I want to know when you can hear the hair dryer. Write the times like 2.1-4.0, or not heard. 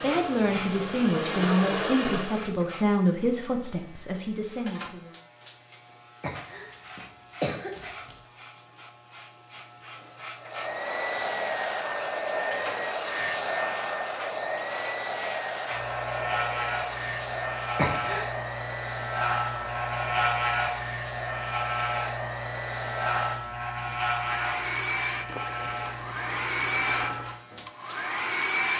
0.0-2.5, 10.4-28.7.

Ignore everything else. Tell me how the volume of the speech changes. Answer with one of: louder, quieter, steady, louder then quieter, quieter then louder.
quieter.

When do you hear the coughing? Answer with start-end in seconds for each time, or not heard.
6.2-8.2, 17.8-18.3.